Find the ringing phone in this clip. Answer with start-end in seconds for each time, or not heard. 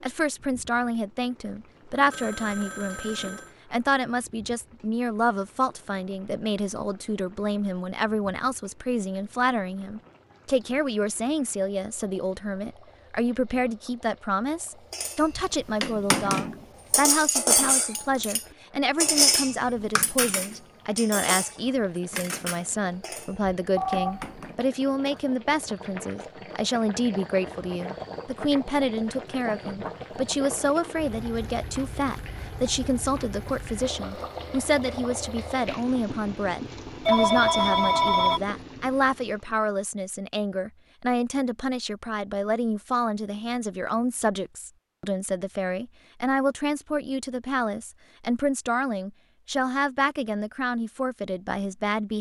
1.9-3.5, 23.8-24.4, 37.0-38.4.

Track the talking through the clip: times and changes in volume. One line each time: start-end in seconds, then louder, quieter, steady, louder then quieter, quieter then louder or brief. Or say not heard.
0.0-52.1 steady.